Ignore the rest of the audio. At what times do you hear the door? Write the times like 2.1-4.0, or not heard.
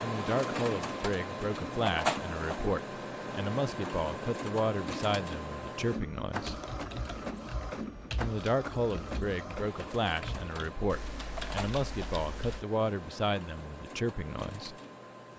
not heard.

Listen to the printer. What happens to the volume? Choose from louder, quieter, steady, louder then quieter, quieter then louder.
quieter.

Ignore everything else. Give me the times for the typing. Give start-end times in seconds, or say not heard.
6.2-12.7.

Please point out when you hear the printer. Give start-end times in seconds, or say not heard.
0.0-15.3.